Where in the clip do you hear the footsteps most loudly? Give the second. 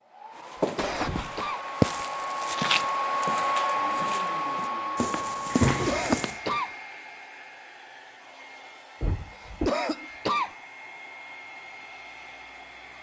2 s.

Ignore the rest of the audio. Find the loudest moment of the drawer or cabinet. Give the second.
6 s.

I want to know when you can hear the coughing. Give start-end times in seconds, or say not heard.
0.6-1.6, 5.7-6.8, 9.3-10.6.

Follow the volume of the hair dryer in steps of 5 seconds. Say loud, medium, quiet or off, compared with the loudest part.
loud, medium, quiet.